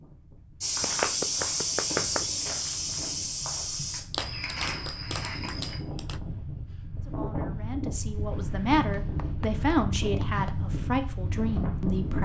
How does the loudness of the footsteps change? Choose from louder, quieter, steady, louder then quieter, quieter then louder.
quieter.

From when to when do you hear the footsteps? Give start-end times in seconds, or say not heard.
0.6-5.8.